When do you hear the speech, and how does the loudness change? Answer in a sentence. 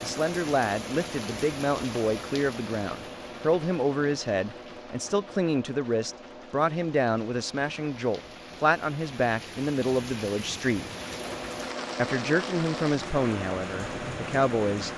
The speech can be heard from 0.0 to 10.9 s, at a steady volume; and briefly from 11.9 to 14.9 s.